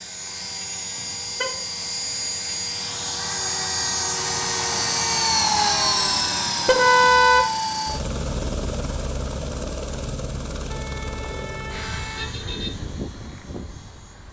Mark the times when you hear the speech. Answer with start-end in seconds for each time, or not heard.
not heard.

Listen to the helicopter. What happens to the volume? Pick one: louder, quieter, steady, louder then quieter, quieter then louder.
louder then quieter.